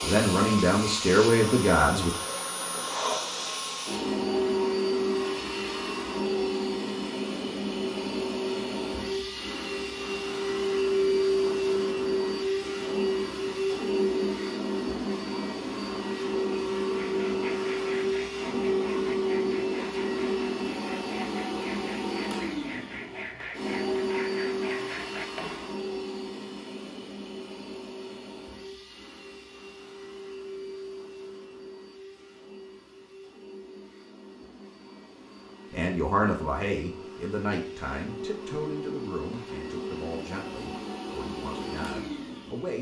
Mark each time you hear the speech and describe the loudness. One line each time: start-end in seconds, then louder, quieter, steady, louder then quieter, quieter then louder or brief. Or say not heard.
0.0-2.1 brief
35.7-42.7 quieter.